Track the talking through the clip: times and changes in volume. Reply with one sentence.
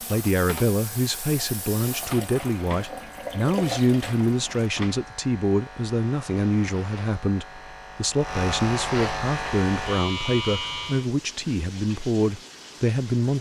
The talking can be heard from 0.1 to 13.3 s, at a steady volume.